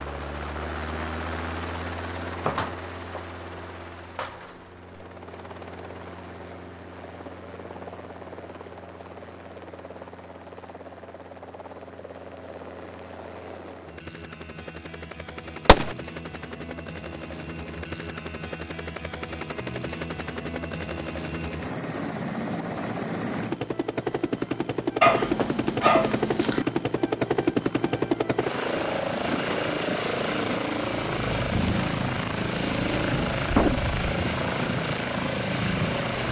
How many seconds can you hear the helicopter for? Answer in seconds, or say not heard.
36 s.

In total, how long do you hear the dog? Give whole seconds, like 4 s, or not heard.
2 s.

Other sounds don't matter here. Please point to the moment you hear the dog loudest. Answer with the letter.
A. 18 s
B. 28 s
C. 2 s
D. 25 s
D.